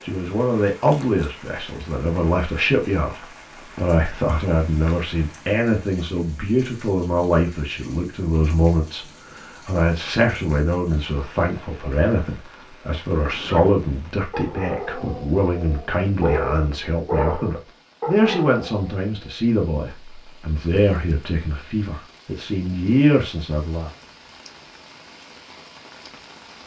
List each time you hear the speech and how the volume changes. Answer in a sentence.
The speech can be heard from 0.0 to 23.9 s, at a steady volume.